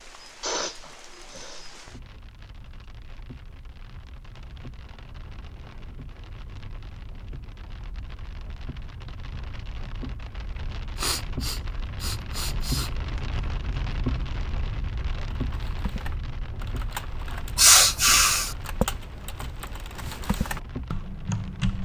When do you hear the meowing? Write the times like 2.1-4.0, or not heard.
not heard.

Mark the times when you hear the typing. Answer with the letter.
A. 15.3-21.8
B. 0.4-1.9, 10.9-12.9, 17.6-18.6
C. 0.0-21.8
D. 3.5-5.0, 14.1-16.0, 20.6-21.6
A.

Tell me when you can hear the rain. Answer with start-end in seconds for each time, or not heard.
0.0-21.8.